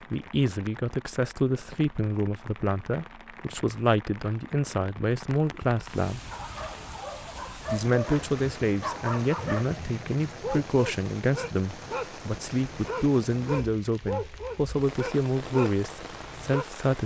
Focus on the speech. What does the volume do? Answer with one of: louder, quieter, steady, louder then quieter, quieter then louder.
steady.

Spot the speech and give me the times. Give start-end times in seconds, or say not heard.
0.1-6.2, 7.7-17.0.